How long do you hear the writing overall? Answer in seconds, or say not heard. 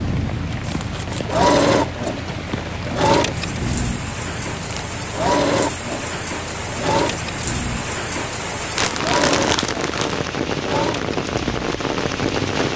not heard.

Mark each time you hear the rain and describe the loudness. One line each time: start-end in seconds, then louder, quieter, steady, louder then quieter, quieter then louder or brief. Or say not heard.
0.0-12.7 louder.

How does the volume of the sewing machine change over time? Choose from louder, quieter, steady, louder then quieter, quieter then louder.
quieter.